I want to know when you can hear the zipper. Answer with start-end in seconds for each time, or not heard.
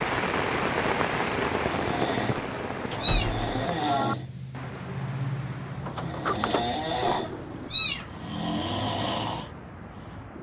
not heard.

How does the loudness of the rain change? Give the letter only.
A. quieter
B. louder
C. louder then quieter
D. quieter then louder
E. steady
A.